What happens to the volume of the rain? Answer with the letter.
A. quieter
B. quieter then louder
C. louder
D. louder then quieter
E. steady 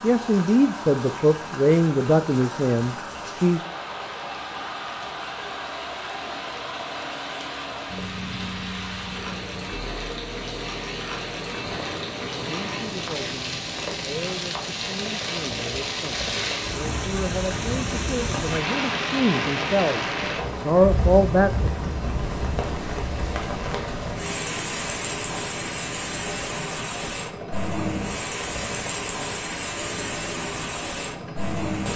C.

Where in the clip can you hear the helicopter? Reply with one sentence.
The helicopter can be heard from 0.0 to 31.9 s.